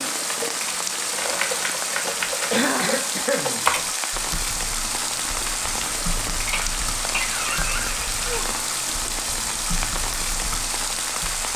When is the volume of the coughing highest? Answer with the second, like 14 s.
3 s.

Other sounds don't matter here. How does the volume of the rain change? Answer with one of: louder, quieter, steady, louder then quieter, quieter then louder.
steady.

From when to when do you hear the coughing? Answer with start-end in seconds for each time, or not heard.
2.5-3.6, 6.5-8.0.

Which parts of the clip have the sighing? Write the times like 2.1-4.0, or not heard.
2.5-3.1, 8.2-8.6.